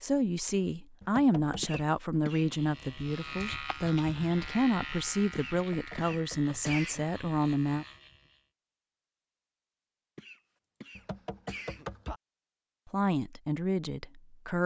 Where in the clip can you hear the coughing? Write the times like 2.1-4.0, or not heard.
1.6-2.5, 5.3-7.0, 10.2-11.9.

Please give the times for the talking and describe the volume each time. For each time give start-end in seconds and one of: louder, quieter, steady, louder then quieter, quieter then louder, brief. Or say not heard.
0.0-7.8 steady
12.9-14.6 brief.